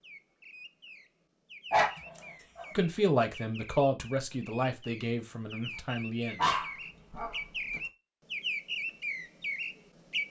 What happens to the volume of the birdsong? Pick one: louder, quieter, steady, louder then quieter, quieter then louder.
louder.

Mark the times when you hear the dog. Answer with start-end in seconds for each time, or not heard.
1.7-2.6, 6.3-7.8.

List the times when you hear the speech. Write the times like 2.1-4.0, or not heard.
2.8-6.5.